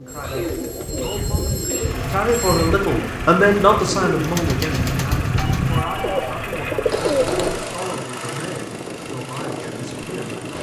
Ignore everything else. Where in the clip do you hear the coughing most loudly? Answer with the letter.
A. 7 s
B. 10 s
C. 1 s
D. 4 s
A.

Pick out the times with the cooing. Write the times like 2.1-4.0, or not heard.
0.0-7.8.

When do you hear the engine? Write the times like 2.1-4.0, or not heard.
1.8-10.5.